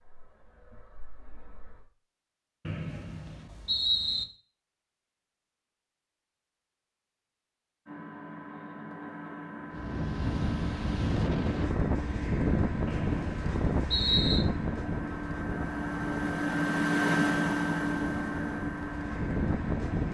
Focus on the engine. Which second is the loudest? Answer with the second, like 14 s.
17 s.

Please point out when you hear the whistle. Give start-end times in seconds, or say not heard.
2.6-4.2, 12.8-14.4.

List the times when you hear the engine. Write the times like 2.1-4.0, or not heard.
0.0-1.9, 7.8-20.0.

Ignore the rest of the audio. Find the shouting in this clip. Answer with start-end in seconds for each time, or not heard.
not heard.